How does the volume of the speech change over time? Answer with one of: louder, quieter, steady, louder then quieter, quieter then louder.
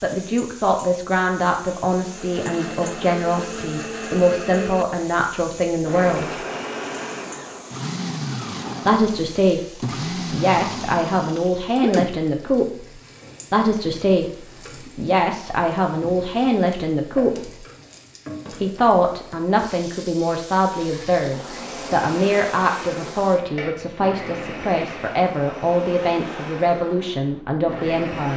steady.